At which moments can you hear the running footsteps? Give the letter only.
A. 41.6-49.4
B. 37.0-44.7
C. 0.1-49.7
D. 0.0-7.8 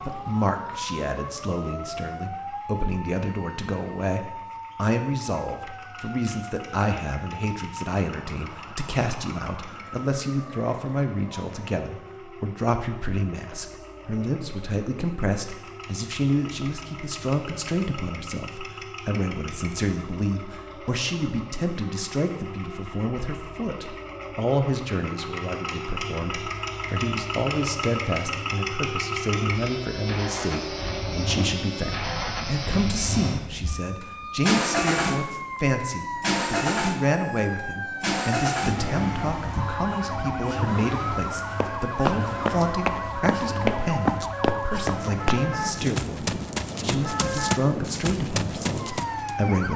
A.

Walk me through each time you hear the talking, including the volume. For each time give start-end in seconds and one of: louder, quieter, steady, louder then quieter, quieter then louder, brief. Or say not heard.
0.1-49.7 steady.